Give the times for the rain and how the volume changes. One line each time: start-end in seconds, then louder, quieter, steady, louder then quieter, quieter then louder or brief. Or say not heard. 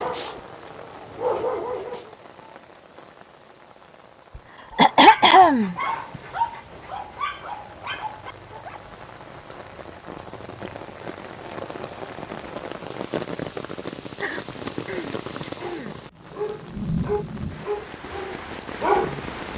0.0-19.5 louder.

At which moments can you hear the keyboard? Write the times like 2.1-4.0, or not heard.
not heard.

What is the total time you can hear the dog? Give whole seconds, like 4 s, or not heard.
10 s.